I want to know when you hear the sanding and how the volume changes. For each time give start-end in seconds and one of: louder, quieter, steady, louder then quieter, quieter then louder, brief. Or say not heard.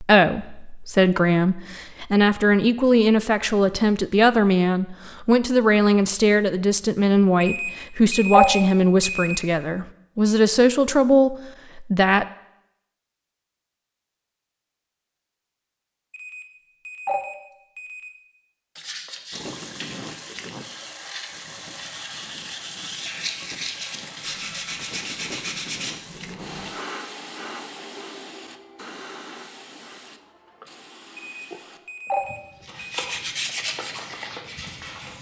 18.8-26.7 louder
32.5-35.1 brief.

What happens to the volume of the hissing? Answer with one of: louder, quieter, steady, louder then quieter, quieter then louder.
quieter.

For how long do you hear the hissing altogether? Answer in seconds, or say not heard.
16 s.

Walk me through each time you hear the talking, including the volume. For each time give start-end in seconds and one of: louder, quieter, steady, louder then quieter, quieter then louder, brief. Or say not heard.
0.0-12.2 steady.